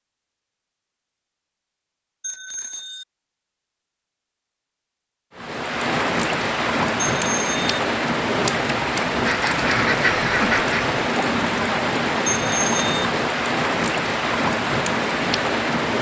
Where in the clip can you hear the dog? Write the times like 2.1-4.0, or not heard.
not heard.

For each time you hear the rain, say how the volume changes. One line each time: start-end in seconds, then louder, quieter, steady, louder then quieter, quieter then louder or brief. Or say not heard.
5.3-15.9 steady.